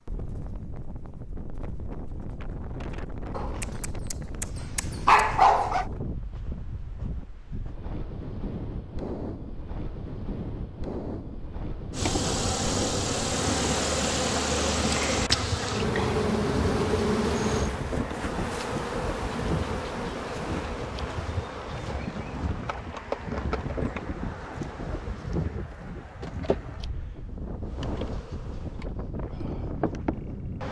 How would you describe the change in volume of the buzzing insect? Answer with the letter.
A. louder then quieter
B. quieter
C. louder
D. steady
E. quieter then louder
B.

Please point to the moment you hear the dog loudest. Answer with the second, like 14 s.
5 s.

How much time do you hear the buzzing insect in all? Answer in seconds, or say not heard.
19 s.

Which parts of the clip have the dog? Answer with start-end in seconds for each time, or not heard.
3.3-5.8.